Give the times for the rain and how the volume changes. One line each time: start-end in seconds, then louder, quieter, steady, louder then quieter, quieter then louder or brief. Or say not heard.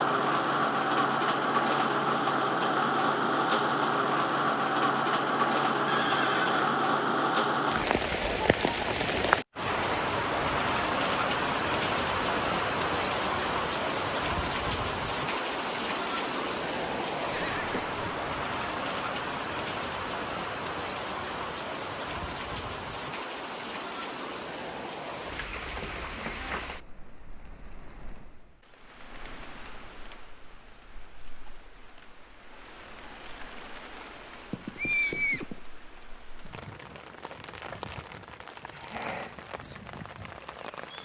0.0-41.0 quieter.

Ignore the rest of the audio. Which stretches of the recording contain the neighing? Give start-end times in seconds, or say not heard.
5.8-6.7, 17.3-17.9, 34.5-35.6.